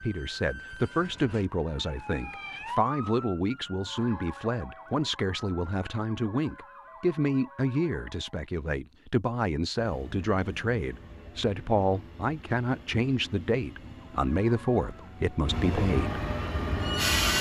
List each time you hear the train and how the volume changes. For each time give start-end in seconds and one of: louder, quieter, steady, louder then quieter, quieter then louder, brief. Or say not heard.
9.8-17.3 louder.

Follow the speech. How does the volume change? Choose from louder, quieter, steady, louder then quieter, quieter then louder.
steady.